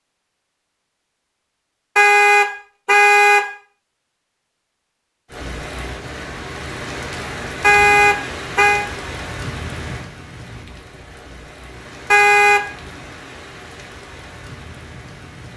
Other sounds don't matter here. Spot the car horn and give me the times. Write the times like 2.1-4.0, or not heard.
1.9-3.5, 7.6-8.8, 12.1-12.6.